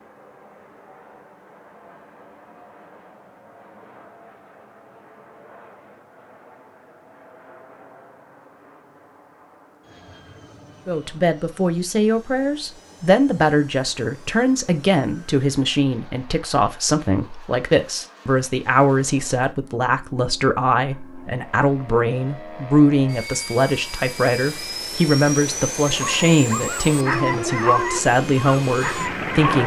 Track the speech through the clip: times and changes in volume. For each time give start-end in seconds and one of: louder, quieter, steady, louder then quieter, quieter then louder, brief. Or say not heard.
10.8-29.6 steady.